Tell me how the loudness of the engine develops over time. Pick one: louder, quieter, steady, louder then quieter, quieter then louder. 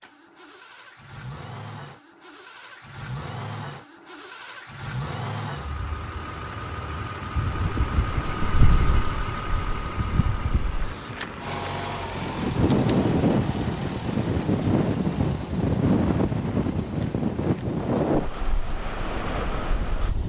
louder then quieter.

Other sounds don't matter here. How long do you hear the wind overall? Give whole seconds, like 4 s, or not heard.
13 s.